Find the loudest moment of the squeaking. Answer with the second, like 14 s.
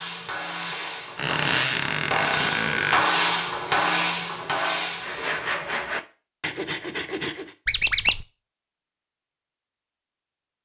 8 s.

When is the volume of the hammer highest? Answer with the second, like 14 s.
3 s.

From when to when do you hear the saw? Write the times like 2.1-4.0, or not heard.
5.0-7.5.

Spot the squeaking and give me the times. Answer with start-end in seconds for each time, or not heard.
1.1-3.1, 7.7-8.2.